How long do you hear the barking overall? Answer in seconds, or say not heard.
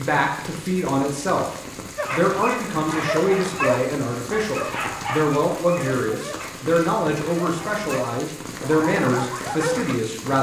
8 s.